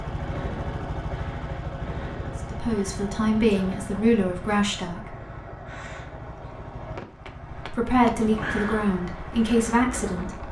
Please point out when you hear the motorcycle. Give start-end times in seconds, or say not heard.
0.0-10.4.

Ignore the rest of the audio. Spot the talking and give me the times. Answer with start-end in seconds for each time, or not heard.
2.5-5.2, 7.7-10.4.